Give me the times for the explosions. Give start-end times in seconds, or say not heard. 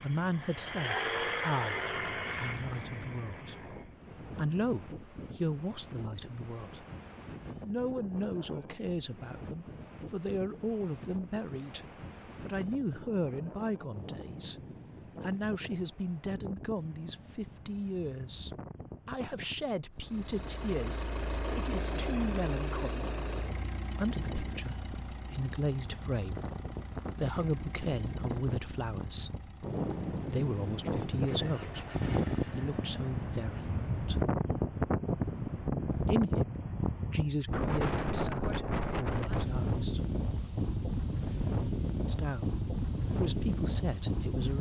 not heard.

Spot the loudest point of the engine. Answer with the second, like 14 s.
1 s.